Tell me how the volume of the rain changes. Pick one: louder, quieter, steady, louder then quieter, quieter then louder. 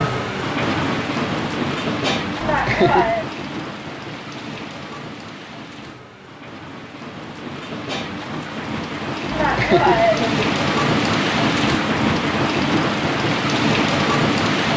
quieter then louder.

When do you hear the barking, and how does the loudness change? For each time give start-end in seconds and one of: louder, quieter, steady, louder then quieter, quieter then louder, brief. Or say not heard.
not heard.